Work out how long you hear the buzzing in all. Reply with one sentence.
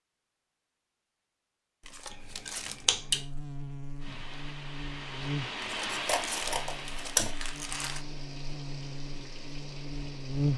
The buzzing can be heard for 9 seconds in total.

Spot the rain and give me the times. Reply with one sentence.
You can hear the rain from 4.0 to 10.5 s.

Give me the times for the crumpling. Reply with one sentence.
You can hear the crumpling from 1.8 to 2.9 s and from 5.6 to 8.1 s.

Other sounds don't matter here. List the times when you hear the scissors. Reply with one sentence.
The scissors can be heard from 2.1 to 3.2 s and from 5.8 to 7.3 s.